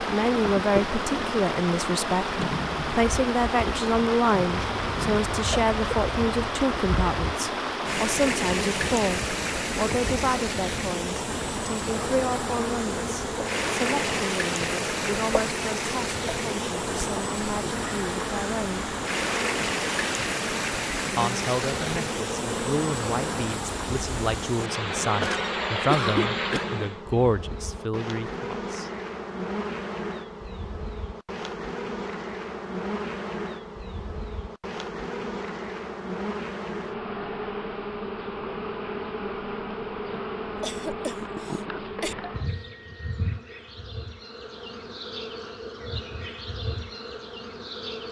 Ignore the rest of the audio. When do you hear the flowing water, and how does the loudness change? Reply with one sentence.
You can hear the flowing water from 0.0 to 27.0 s, at a steady volume.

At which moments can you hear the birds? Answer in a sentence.
The birds can't be heard in this clip.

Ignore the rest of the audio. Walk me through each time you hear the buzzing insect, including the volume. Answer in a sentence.
The buzzing insect can be heard from 0.0 to 48.0 s, at a steady volume.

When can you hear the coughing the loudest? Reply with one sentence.
The volume of the coughing peaks at 26 seconds.